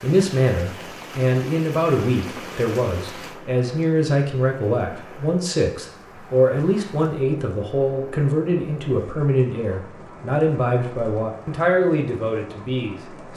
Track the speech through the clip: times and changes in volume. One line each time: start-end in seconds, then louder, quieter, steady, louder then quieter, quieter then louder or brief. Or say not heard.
0.0-13.3 steady.